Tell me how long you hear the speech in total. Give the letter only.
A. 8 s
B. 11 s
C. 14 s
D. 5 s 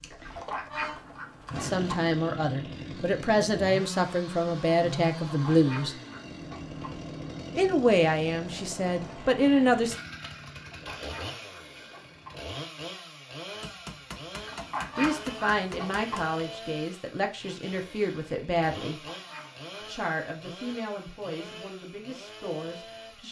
C.